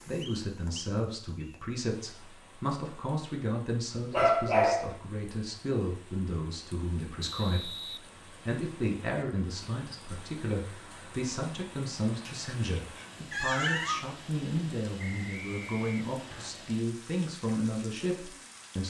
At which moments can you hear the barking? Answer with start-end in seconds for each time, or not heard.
4.1-4.9, 12.2-14.0.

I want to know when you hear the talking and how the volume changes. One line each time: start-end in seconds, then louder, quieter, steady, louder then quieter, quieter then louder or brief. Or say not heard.
0.1-18.8 steady.